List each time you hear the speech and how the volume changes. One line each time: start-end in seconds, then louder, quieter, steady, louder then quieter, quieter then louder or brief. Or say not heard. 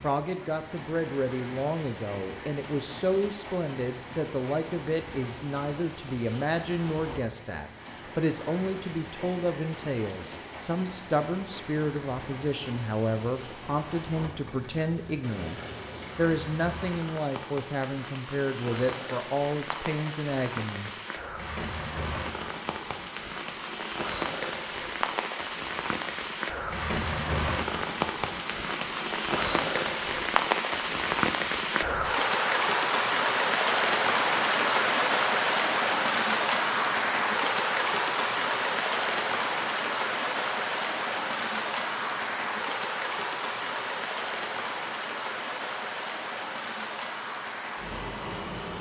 0.0-21.1 steady.